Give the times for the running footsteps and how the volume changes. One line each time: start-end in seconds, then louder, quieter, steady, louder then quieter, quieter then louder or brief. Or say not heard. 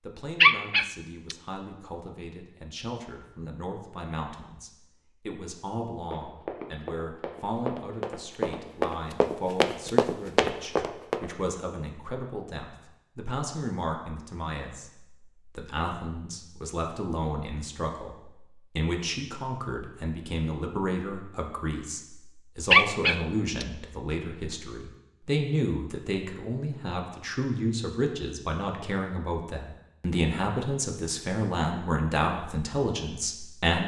6.0-11.2 louder.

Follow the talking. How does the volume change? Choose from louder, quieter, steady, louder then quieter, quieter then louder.
louder.